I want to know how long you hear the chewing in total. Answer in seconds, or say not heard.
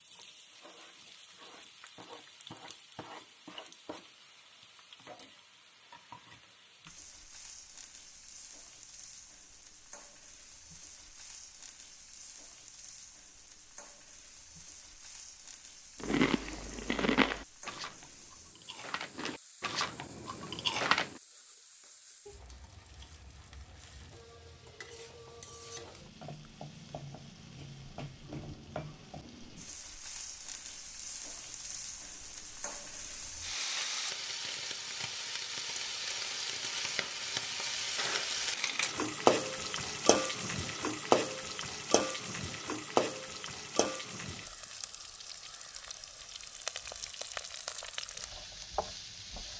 5 s.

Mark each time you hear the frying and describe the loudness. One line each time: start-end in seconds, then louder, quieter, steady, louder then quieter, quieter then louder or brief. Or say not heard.
0.0-49.5 louder.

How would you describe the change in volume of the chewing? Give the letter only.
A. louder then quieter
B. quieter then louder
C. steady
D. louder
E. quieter
B.